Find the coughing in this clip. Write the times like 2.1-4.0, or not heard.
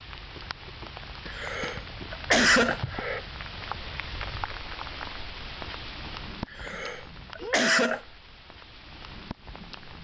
0.8-3.2, 6.0-8.0.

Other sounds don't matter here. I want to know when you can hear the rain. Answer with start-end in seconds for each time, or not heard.
0.0-9.9.